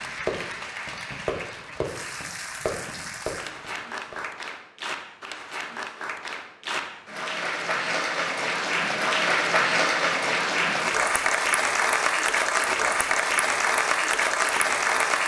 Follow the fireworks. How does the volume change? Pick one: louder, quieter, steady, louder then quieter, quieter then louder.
louder.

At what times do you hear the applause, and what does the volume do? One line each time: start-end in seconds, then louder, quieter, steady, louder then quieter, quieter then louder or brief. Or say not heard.
0.0-15.2 louder.